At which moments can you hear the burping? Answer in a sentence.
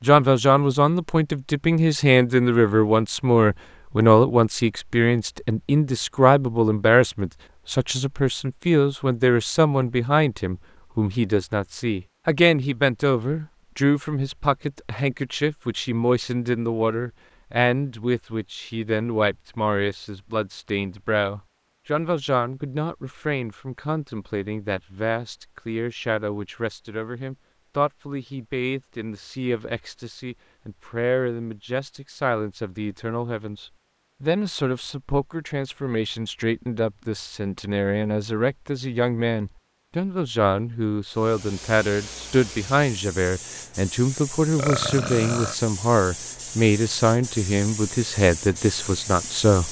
You can hear the burping from 44.5 to 45.5 s.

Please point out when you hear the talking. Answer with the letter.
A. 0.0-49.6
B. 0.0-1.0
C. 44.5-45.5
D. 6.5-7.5
A.